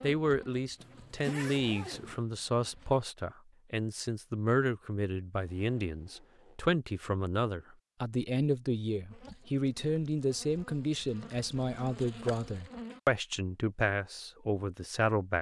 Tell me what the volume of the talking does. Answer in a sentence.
The loudness of the talking stays about the same.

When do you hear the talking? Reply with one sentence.
You can hear the talking from 0.0 to 15.3 s.